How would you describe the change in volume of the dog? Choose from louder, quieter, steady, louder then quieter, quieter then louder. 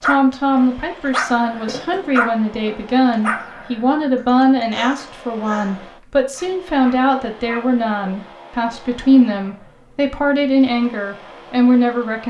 quieter.